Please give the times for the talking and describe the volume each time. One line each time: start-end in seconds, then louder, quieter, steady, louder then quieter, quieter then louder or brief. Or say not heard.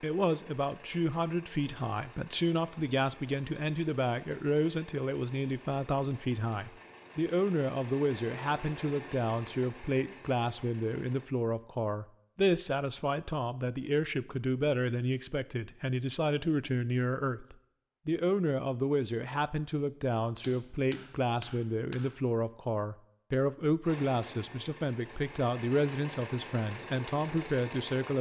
0.0-28.1 steady.